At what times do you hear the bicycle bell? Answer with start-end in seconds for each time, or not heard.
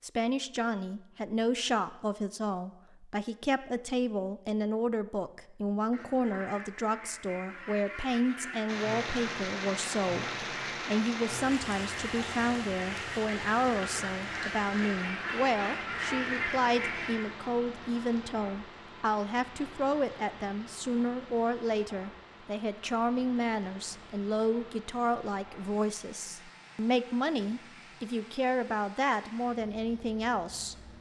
not heard.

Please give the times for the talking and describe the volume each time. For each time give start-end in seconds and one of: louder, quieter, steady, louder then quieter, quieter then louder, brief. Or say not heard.
0.0-30.8 steady.